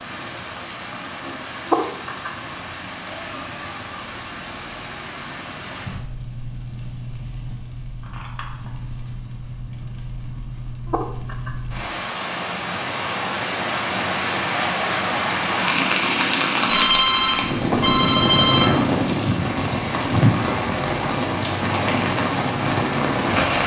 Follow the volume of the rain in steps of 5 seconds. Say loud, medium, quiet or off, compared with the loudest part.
quiet, quiet, medium, loud, loud.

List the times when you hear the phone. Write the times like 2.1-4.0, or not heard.
3.1-3.5, 8.0-8.7, 16.6-18.6.